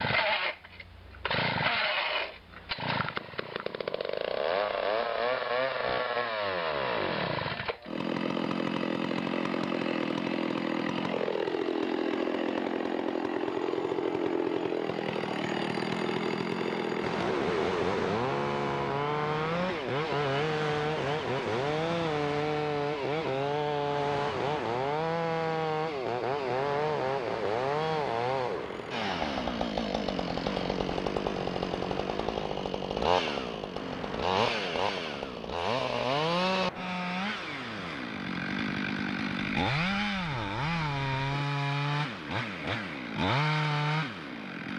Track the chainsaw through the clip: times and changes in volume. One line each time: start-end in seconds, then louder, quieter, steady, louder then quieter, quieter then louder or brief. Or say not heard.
0.0-44.7 steady.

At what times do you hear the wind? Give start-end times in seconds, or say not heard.
17.0-44.7.